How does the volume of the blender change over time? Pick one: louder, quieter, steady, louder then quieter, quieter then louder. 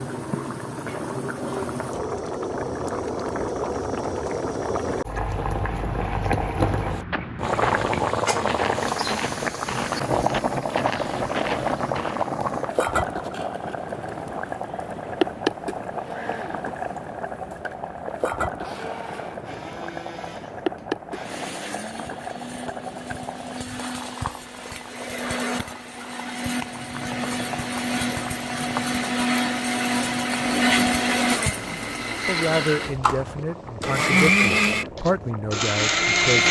louder.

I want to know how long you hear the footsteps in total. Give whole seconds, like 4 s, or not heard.
7 s.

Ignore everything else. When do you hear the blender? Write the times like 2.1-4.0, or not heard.
15.8-36.4.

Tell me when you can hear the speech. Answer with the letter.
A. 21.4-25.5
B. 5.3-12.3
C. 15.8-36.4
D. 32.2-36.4
D.